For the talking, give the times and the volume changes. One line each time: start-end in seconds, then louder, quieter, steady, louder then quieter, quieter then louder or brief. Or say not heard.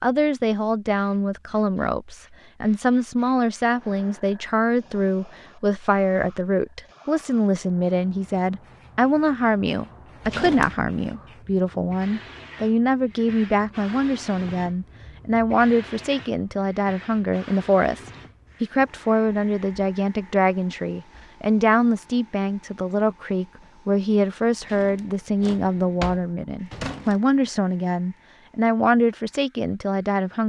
0.0-30.4 steady.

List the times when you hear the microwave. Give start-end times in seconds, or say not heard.
not heard.